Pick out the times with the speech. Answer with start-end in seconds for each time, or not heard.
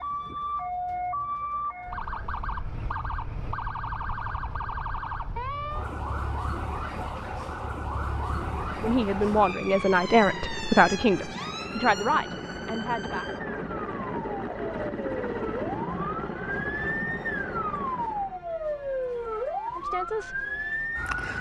8.7-13.2, 19.6-20.4.